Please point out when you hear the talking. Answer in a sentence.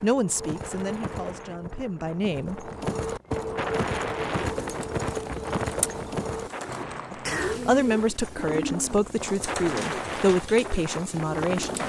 You can hear the talking from 0.0 to 2.7 s and from 7.1 to 11.8 s.